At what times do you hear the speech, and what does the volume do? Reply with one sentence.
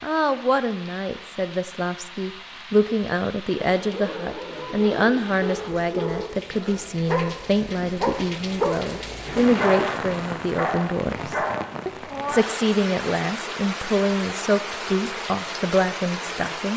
You can hear the speech from 0.0 to 16.7 s, at a steady volume.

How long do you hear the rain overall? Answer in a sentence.
The rain can be heard for 17 seconds in total.